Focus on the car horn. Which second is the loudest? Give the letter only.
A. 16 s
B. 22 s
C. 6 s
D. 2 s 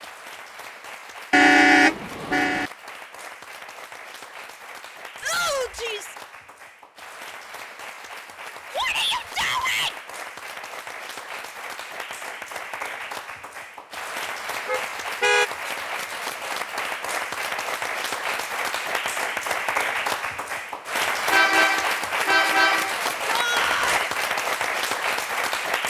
D.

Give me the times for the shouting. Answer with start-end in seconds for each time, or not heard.
5.2-6.2, 8.7-9.9, 23.2-24.1.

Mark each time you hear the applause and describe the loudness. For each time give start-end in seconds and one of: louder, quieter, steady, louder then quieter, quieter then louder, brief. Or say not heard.
0.0-25.8 louder.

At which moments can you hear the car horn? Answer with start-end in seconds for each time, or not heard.
1.3-2.7, 14.7-15.5, 21.3-23.0.